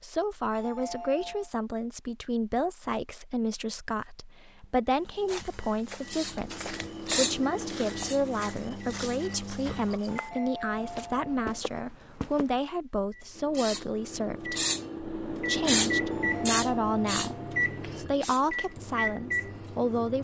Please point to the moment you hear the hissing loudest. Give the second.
16 s.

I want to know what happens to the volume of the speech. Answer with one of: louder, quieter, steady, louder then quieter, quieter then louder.
steady.